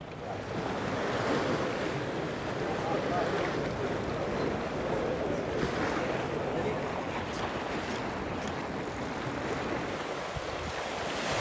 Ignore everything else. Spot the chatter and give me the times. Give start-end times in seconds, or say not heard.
0.0-7.0.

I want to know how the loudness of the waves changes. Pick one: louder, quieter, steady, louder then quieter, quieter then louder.
steady.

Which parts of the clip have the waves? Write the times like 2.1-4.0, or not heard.
0.0-11.3.